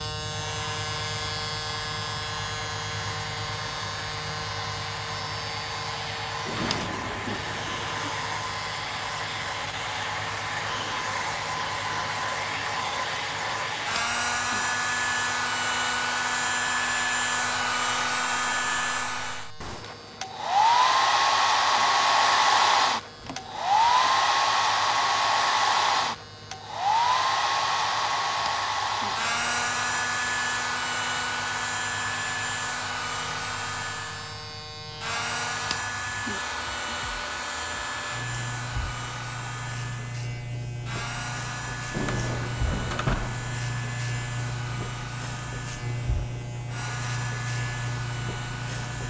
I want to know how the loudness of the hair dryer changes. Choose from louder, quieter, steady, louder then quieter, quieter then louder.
louder then quieter.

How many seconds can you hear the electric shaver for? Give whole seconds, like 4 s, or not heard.
49 s.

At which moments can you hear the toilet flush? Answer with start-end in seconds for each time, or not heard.
not heard.